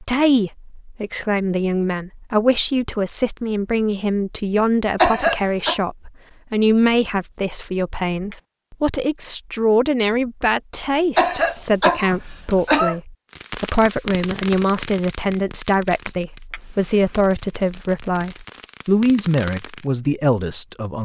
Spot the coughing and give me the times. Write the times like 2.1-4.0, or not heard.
5.0-5.8, 11.2-12.9.